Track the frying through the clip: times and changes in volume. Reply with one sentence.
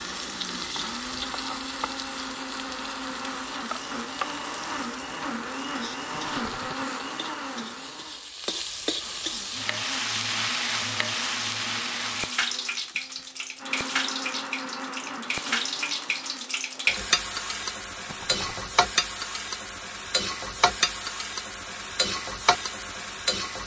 You can hear the frying from 0.0 to 23.6 s, getting louder.